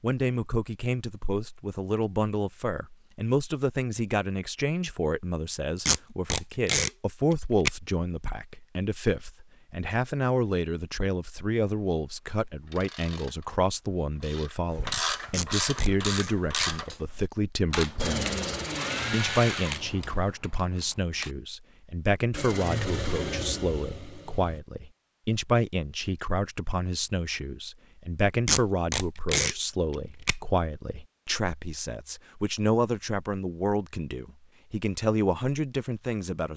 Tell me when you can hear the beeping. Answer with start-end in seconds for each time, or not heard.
not heard.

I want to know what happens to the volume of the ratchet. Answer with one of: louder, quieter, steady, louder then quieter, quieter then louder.
louder.